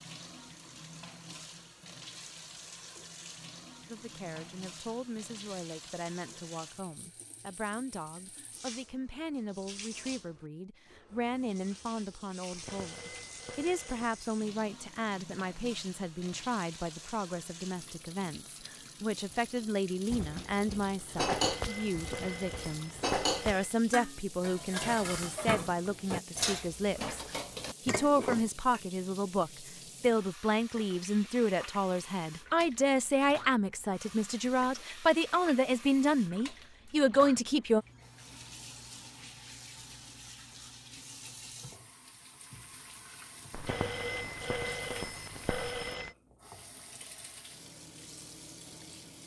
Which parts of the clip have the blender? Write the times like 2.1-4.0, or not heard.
not heard.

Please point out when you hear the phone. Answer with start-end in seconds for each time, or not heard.
12.5-14.3, 21.1-23.8, 43.5-46.1.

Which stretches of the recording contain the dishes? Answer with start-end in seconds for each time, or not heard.
20.1-28.8.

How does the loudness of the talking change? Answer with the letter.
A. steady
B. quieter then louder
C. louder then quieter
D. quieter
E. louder
E.